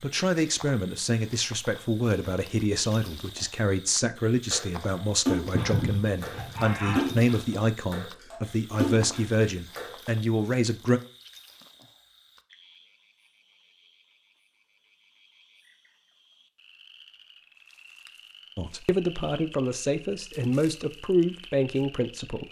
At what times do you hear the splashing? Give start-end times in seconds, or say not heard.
4.5-9.9.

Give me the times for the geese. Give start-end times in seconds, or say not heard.
5.5-7.2.